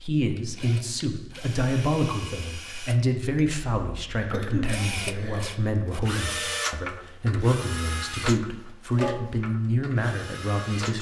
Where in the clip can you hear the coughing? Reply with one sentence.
The coughing can be heard from 4.2 to 5.5 s.